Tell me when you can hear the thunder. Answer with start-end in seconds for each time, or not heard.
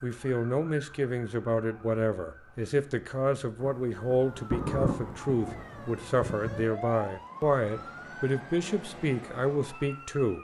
3.6-6.7.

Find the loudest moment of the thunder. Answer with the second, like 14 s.
5 s.